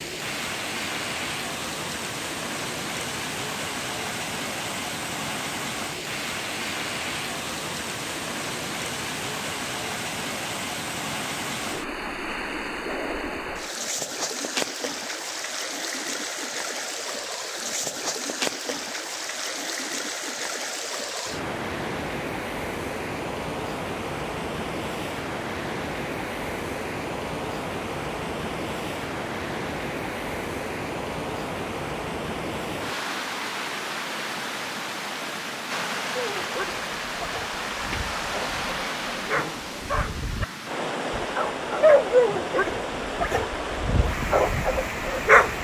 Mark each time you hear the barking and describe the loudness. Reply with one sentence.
The barking can be heard from 36.1 to 40.5 s, getting quieter then louder; and from 41.1 to 45.5 s, getting quieter.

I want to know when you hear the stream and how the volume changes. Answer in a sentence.
You can hear the stream from 0.0 to 45.5 s, at a steady volume.